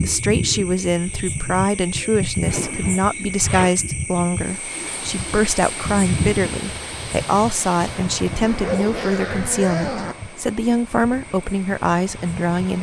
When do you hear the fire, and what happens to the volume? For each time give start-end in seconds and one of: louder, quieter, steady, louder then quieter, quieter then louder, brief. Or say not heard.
not heard.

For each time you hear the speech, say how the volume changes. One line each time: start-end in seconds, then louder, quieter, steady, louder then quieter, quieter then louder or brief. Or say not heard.
0.0-12.7 steady.